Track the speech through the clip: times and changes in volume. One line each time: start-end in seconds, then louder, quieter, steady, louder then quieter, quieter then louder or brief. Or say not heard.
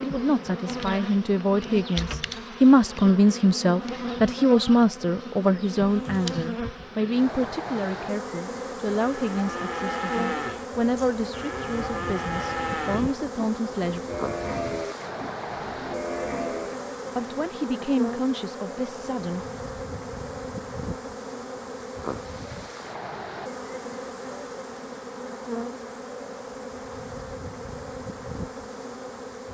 0.0-14.0 quieter
17.1-19.4 brief.